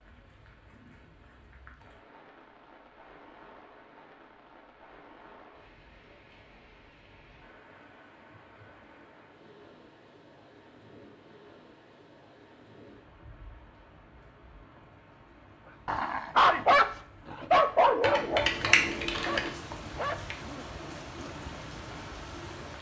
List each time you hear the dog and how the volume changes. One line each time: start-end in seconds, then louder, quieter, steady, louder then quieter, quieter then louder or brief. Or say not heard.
15.8-21.4 quieter.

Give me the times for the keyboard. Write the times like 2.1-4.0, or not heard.
18.0-19.5.